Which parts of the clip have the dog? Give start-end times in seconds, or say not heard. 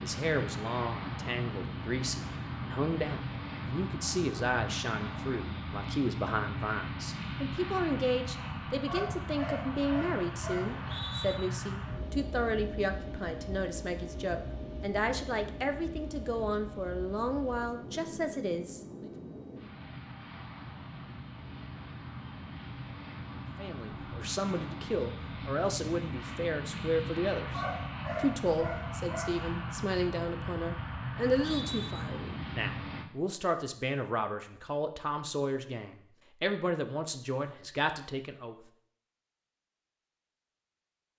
8.8-10.8, 27.5-29.4.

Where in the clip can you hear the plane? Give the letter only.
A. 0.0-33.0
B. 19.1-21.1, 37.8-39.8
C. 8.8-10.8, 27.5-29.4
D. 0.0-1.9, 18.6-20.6
A.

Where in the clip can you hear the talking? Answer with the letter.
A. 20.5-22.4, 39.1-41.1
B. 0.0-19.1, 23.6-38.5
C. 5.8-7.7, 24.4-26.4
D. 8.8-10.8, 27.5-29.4
B.